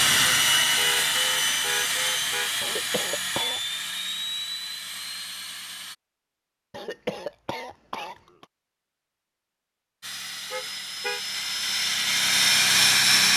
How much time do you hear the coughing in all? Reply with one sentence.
The coughing can be heard for 3 seconds in total.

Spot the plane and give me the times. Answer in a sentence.
The plane can be heard from 0.0 to 6.0 s and from 10.0 to 13.3 s.